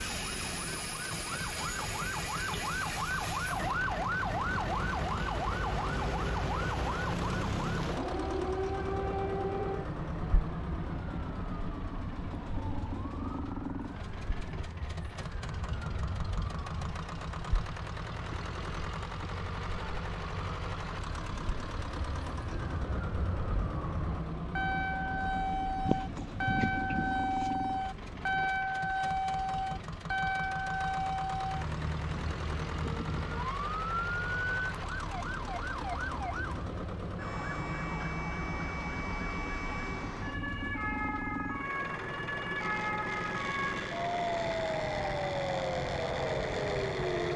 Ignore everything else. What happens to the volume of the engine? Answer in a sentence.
The volume of the engine stays about the same.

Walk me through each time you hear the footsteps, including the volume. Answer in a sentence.
The footsteps can't be heard in this clip.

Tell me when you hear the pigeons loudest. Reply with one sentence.
The loudest moment of the pigeons is at 26 seconds.